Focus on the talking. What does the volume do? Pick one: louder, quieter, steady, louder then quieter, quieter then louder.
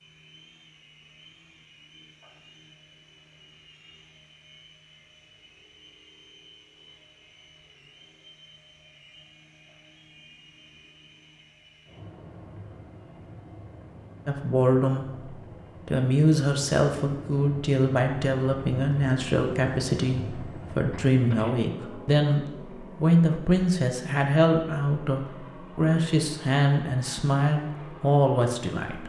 steady.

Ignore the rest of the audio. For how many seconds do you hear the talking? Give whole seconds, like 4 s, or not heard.
15 s.